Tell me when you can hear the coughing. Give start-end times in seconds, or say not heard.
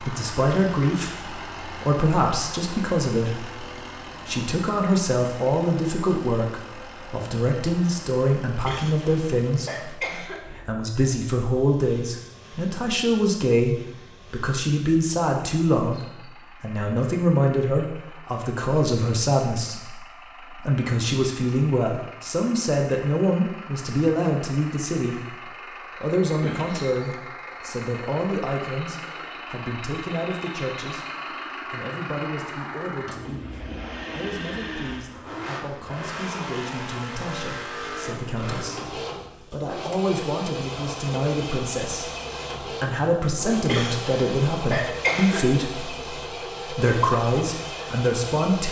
8.7-10.4, 43.6-45.4.